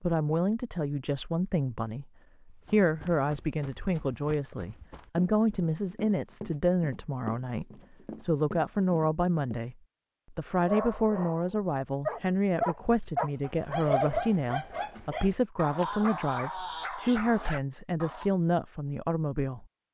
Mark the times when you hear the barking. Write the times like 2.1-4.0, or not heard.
10.6-18.3.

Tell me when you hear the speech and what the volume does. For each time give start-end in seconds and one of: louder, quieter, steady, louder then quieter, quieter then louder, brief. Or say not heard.
0.0-19.8 steady.